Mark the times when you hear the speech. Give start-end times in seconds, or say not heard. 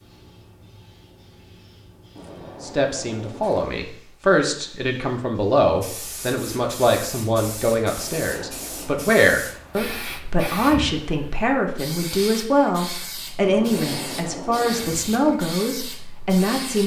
2.6-16.8.